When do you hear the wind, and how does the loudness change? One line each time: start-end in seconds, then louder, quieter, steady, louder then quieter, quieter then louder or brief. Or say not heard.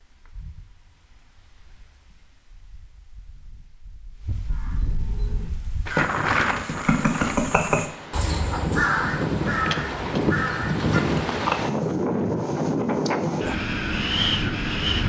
0.0-15.0 louder.